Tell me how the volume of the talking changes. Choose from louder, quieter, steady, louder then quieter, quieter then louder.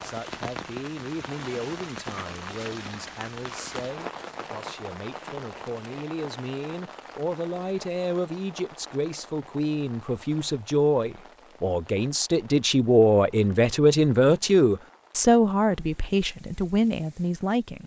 louder.